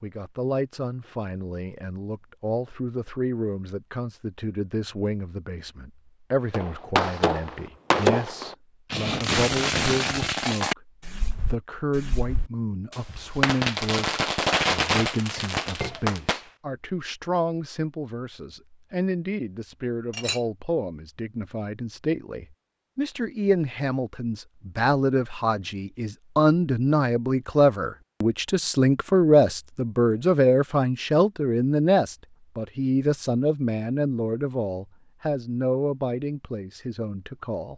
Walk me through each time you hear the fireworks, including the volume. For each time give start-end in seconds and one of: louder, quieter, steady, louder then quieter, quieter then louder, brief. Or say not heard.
6.5-16.4 quieter then louder.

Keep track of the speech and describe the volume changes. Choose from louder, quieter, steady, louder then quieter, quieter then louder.
louder.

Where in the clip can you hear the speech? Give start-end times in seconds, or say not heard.
0.0-37.7.